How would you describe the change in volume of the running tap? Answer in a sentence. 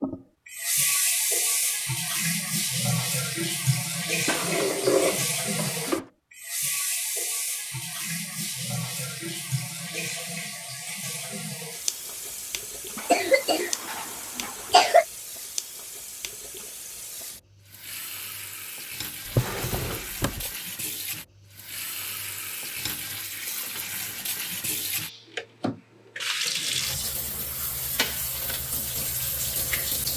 The loudness of the running tap goes down, then up.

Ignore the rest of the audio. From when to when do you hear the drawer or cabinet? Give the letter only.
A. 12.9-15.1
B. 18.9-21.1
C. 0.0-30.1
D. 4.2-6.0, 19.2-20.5
D.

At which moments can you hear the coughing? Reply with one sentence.
You can hear the coughing from 12.9 to 15.1 s.